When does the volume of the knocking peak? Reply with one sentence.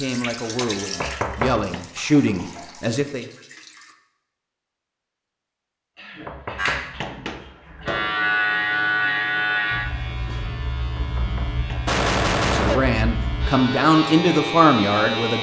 The loudest moment of the knocking is at 1 second.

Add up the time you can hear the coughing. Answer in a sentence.
The coughing can be heard for 4 seconds in total.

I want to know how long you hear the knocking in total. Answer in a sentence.
You can hear the knocking for 4 seconds altogether.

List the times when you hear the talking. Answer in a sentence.
You can hear the talking from 0.0 to 3.2 s and from 12.5 to 15.3 s.